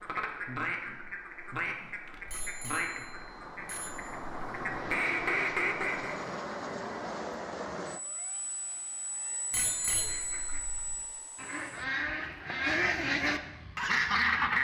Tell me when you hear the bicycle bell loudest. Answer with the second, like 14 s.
10 s.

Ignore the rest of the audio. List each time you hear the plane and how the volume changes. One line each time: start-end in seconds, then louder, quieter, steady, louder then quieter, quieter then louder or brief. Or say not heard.
0.0-14.5 louder then quieter.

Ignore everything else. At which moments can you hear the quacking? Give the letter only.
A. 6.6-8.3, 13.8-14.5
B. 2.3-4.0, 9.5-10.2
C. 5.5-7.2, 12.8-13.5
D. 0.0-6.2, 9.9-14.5
D.